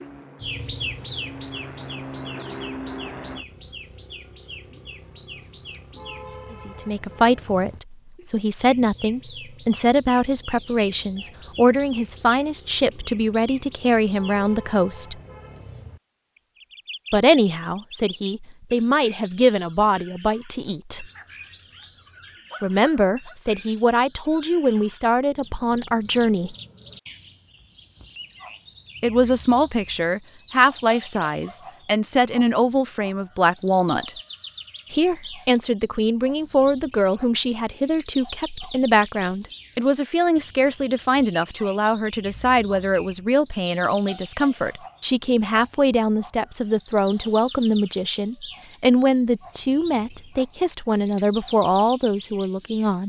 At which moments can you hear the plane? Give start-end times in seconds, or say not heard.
0.0-3.5.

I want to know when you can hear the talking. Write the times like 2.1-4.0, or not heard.
6.5-15.2, 17.1-21.1, 22.6-26.6, 29.0-34.1, 34.9-53.0.